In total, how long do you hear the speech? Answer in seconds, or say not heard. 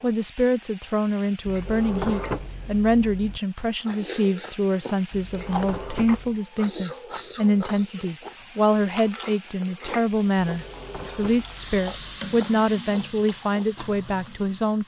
15 s.